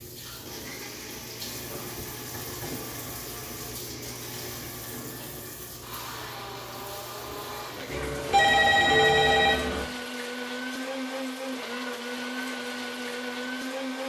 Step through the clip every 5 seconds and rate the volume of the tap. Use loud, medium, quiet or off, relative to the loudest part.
loud, loud, medium.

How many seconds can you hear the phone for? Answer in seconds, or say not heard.
2 s.